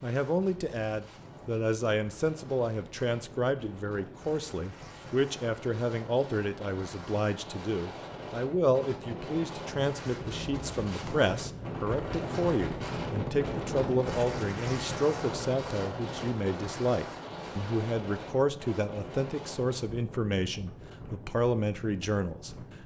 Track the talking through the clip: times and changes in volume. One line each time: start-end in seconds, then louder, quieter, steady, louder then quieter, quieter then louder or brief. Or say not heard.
0.0-22.6 steady.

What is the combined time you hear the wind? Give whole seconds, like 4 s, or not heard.
23 s.